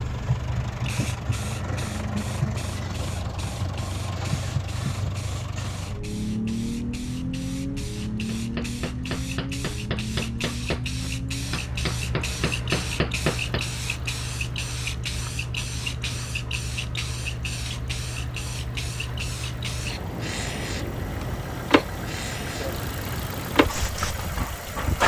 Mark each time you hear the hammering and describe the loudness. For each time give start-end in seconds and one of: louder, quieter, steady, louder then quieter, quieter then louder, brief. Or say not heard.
8.2-13.7 louder.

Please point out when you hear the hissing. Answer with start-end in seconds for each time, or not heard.
0.0-25.0.